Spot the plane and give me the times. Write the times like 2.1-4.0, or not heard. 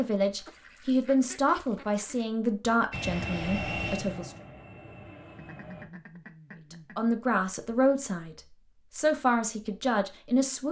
2.9-5.8.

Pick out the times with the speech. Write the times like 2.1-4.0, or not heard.
0.0-4.3, 6.7-10.6.